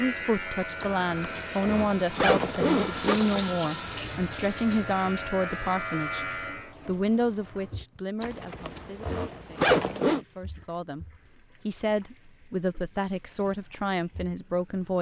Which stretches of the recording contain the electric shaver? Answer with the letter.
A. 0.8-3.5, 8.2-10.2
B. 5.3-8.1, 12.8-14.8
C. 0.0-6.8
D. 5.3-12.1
C.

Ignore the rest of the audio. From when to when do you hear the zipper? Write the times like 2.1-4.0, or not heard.
0.8-3.5, 8.2-10.2.